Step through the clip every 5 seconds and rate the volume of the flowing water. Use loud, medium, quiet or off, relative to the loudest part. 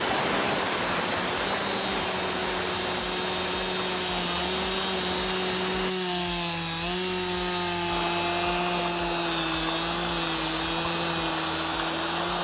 loud, medium, loud.